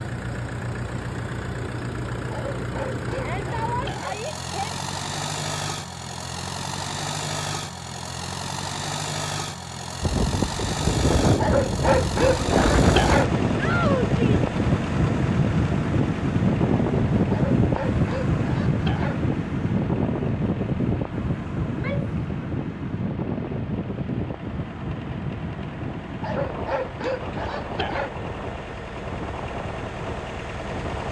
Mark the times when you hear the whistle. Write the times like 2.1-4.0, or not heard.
not heard.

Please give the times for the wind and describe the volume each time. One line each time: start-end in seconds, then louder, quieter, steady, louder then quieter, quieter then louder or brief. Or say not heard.
10.0-31.0 quieter.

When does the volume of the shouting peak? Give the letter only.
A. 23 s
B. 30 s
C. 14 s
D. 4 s
C.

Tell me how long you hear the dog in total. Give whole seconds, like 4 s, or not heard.
8 s.